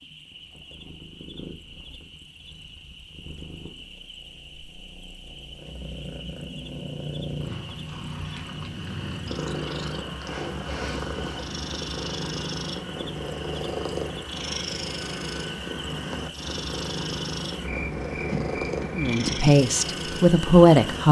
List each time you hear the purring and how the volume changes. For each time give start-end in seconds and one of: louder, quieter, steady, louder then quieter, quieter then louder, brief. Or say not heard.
0.0-21.0 louder.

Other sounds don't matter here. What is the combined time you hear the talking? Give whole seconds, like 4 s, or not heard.
2 s.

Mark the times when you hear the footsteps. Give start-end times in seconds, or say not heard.
not heard.